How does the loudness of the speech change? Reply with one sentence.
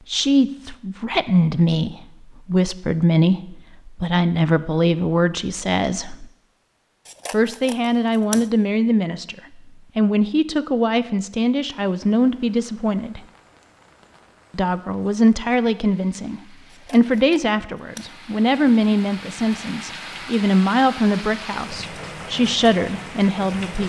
The loudness of the speech stays about the same.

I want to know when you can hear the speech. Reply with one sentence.
The speech can be heard from 0.1 to 6.3 s, from 7.3 to 13.2 s and from 14.5 to 23.8 s.